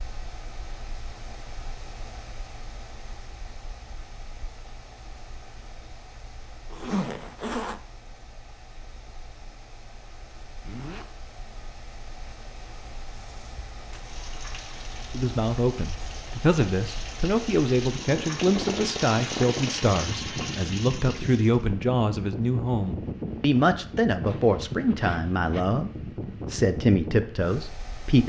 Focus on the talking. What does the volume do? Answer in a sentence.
The loudness of the talking stays about the same.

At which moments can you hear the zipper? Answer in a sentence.
You can hear the zipper from 6.7 to 7.8 s, from 10.7 to 11.1 s and from 24.2 to 25.8 s.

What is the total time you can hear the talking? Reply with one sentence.
You can hear the talking for 13 seconds altogether.